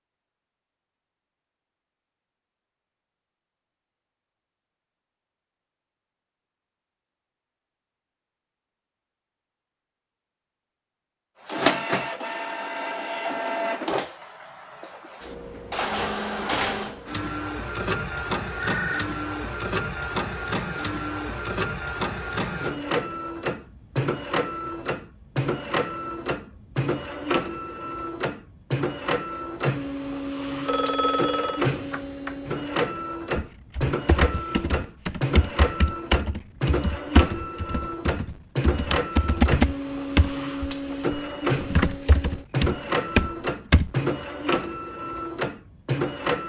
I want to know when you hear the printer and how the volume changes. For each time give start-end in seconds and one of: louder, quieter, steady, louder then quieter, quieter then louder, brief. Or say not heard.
11.4-46.4 steady.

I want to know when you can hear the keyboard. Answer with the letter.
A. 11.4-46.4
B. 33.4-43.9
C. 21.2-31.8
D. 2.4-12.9
B.